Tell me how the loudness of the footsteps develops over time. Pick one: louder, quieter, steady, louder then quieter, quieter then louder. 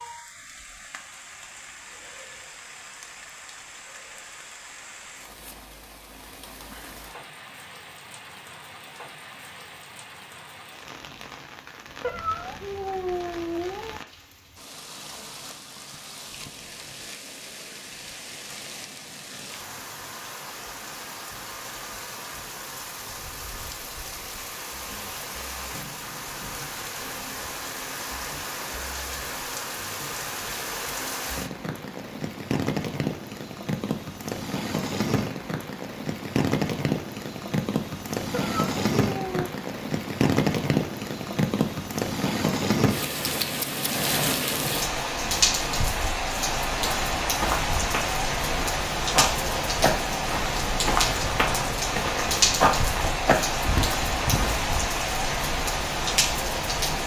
louder.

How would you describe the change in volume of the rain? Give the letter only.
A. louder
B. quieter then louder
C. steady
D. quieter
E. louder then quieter
A.